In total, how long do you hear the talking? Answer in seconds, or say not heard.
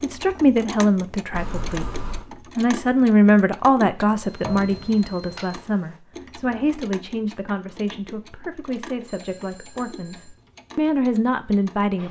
12 s.